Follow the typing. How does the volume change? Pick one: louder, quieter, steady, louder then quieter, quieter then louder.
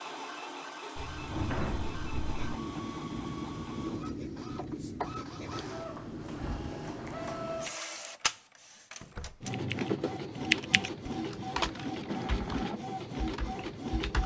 quieter.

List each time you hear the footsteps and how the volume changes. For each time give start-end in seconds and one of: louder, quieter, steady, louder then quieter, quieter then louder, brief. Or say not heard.
not heard.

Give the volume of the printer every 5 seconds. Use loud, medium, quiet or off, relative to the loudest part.
medium, loud, loud.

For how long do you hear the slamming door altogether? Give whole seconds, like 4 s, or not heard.
2 s.